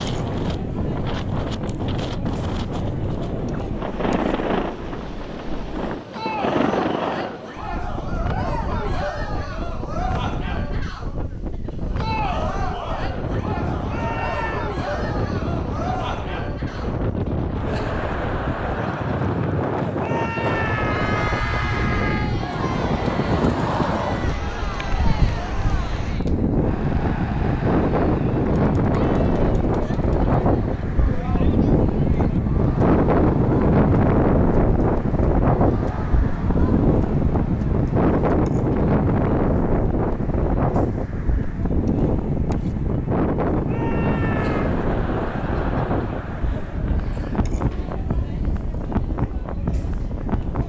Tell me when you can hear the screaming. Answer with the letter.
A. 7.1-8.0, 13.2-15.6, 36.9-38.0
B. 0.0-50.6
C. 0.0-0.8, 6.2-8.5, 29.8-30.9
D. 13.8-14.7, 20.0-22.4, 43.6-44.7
D.